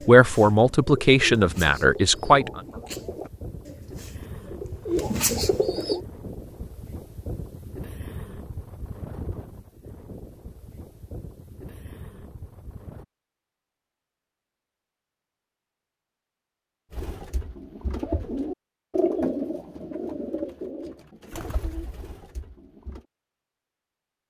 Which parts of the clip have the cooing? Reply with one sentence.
You can hear the cooing from 0.0 to 6.0 s and from 16.9 to 23.1 s.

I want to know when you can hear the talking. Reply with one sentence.
You can hear the talking from 0.1 to 2.6 s.